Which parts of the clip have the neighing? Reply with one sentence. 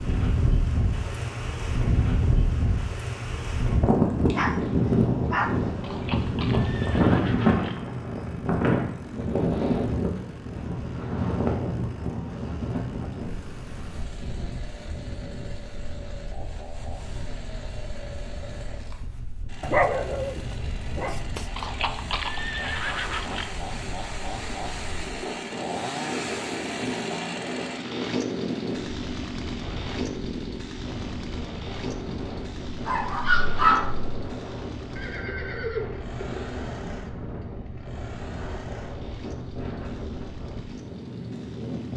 The neighing can be heard from 5.8 to 7.8 s, from 21.6 to 23.6 s and from 35.0 to 36.5 s.